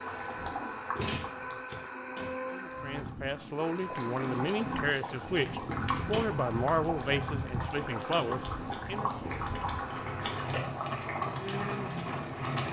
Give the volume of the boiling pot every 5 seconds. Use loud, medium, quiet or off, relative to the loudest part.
medium, loud, loud.